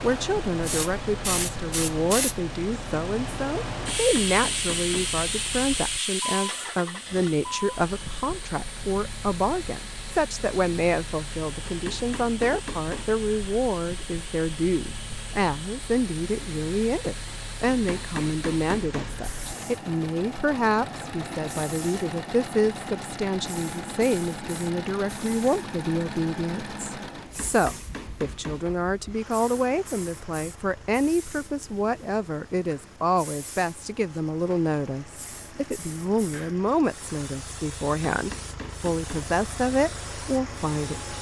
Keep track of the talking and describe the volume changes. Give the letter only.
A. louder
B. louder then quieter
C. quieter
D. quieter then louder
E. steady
E.